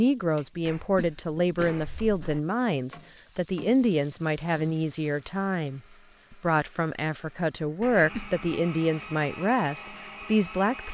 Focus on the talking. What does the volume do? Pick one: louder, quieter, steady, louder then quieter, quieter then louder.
steady.